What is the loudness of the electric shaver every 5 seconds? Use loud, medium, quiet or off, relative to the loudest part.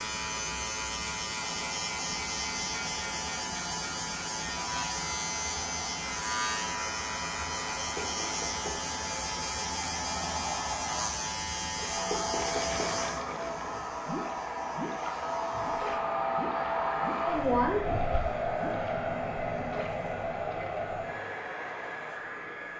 loud, loud, loud, quiet, quiet.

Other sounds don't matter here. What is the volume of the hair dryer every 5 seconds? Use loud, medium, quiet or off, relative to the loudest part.
quiet, quiet, medium, loud, medium.